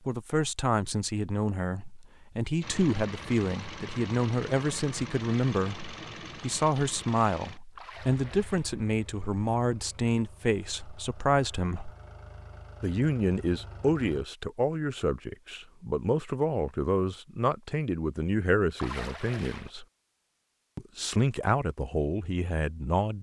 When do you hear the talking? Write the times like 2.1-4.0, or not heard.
0.1-11.9, 12.8-19.9, 20.8-23.1.